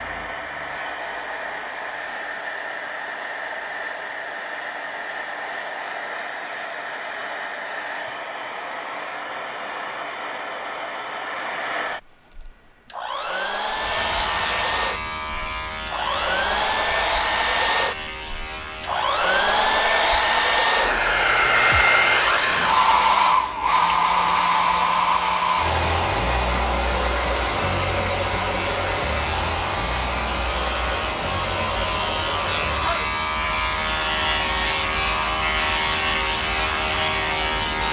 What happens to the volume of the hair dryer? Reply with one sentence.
The loudness of the hair dryer goes up, then down.